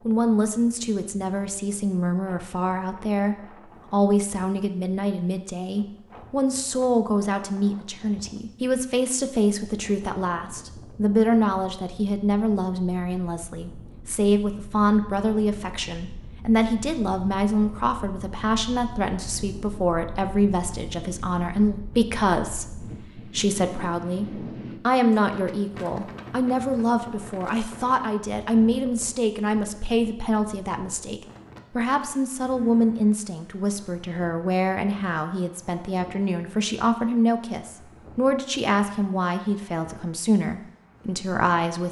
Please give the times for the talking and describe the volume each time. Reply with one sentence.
You can hear the talking from 0.1 to 41.8 s, at a steady volume.